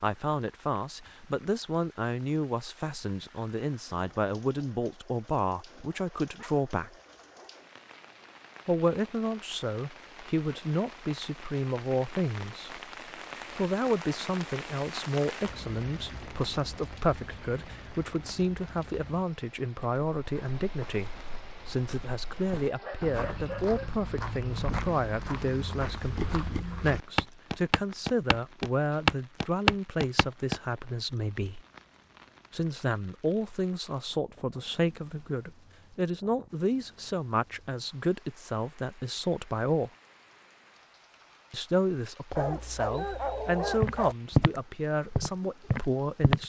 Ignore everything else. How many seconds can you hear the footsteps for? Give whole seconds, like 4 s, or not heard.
13 s.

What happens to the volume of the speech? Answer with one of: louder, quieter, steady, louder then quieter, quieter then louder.
steady.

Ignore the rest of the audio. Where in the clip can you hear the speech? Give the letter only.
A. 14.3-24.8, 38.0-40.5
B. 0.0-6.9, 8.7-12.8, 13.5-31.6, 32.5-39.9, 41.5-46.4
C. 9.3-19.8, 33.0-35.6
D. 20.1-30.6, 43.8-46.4
B.